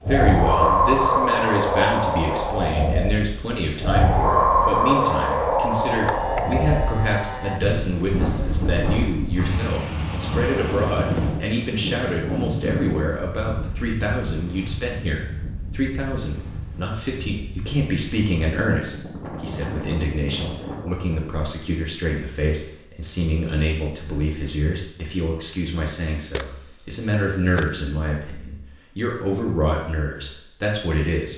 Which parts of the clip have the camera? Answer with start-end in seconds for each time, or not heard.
5.8-7.6, 26.3-27.9.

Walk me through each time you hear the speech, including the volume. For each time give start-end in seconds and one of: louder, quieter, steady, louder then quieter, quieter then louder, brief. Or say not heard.
0.0-31.3 steady.